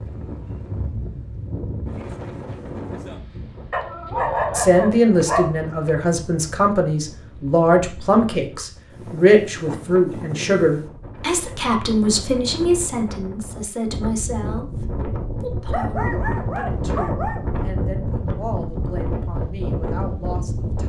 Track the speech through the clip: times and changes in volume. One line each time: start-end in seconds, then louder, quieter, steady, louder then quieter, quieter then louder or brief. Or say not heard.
4.5-20.8 quieter.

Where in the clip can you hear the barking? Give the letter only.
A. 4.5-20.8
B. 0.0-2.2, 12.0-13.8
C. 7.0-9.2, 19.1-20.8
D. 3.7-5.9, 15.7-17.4
D.